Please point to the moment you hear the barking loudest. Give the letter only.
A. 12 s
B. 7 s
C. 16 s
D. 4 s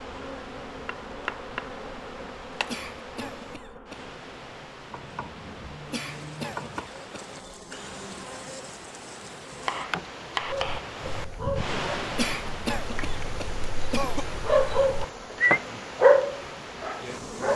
C.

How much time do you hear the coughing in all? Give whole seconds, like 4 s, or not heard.
5 s.